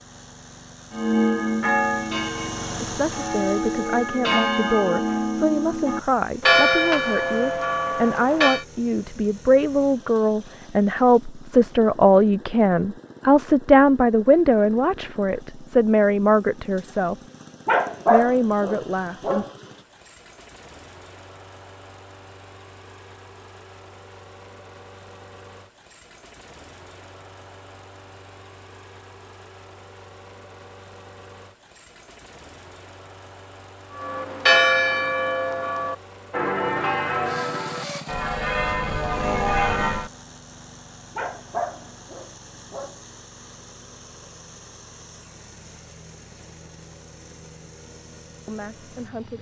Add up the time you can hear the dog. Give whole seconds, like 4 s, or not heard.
4 s.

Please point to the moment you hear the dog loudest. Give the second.
18 s.